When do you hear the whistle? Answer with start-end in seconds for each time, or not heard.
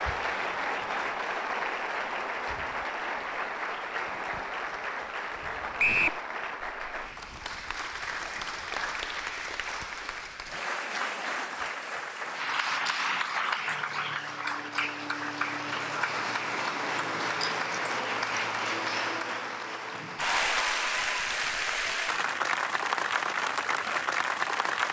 5.8-6.2.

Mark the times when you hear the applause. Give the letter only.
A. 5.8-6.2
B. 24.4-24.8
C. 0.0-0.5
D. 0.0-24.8
D.